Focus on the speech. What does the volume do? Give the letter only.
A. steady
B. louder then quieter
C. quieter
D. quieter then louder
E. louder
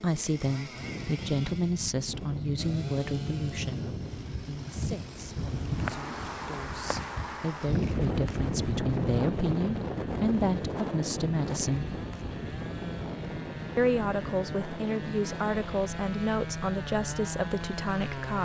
D.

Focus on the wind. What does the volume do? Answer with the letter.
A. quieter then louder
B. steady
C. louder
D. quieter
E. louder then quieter
E.